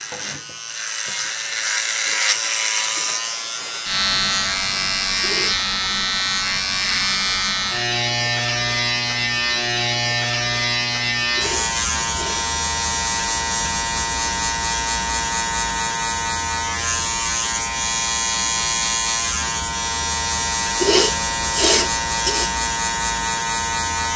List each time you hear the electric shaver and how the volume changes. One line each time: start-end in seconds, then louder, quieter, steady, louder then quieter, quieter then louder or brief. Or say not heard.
0.0-24.1 steady.